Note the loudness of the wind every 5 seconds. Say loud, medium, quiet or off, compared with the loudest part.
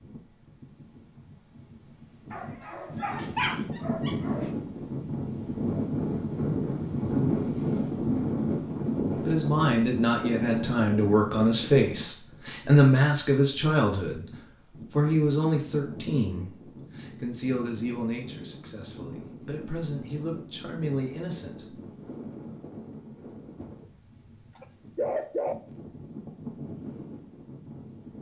medium, loud, medium, quiet, quiet, quiet.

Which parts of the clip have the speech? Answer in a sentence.
You can hear the speech from 9.2 to 14.3 s and from 14.9 to 21.8 s.